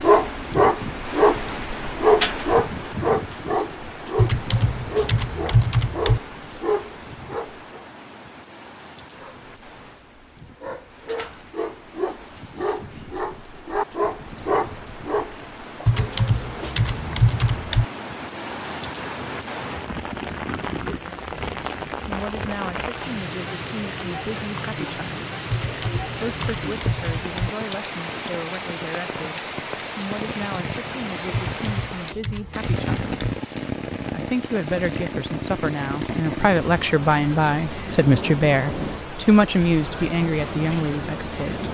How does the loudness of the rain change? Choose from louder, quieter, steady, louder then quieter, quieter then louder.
quieter then louder.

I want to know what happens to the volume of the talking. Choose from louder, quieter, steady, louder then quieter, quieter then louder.
louder.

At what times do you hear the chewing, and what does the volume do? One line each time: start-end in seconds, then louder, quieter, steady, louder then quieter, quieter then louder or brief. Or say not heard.
not heard.